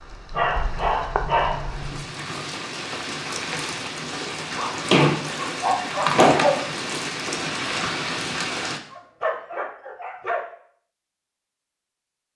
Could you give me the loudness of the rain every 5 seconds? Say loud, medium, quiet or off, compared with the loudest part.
medium, loud, off.